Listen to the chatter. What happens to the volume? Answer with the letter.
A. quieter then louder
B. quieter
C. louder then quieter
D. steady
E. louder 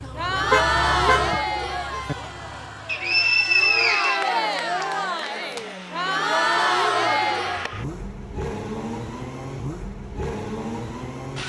A.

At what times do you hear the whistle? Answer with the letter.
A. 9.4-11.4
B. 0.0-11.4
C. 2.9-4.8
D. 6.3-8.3
C.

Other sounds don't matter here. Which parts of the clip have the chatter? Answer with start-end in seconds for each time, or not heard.
0.0-7.8.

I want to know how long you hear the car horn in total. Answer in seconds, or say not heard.
2 s.